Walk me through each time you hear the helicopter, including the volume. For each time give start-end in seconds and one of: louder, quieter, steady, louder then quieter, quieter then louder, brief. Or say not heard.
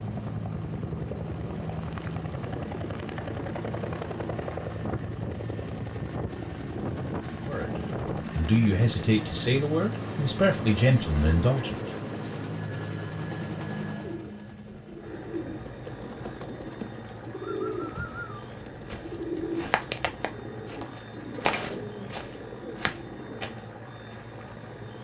0.0-25.0 quieter.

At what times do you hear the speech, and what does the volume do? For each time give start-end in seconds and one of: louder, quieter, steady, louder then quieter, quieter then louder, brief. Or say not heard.
7.5-11.9 steady.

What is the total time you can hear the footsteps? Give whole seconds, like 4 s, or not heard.
5 s.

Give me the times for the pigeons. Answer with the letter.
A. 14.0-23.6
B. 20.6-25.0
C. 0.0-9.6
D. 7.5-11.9
A.